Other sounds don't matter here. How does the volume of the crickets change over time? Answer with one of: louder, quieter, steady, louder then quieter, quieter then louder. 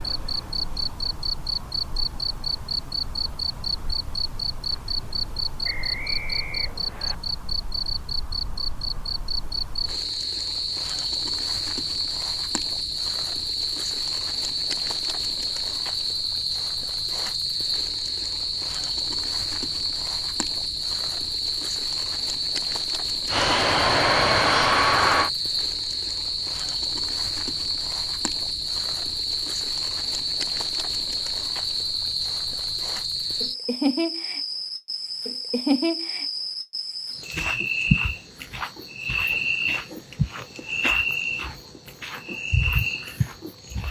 steady.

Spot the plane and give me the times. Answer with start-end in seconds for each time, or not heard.
23.2-25.3.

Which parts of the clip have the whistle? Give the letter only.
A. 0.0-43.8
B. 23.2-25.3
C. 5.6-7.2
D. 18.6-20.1
C.